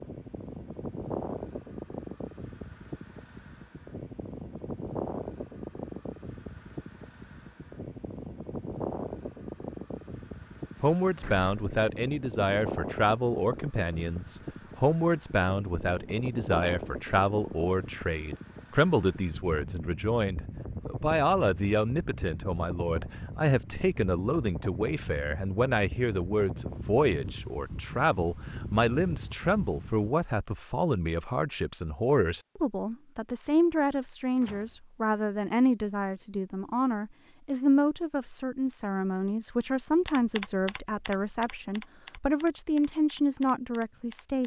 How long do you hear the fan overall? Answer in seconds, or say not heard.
30 s.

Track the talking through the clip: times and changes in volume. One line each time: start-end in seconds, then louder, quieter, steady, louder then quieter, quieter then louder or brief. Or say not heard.
10.8-44.4 steady.